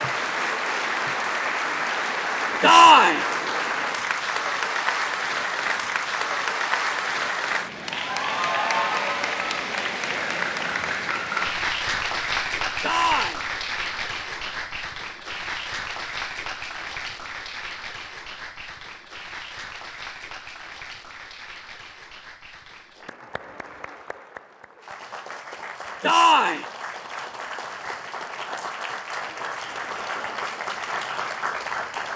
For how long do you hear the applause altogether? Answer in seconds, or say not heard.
32 s.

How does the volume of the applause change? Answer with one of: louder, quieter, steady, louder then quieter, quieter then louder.
quieter then louder.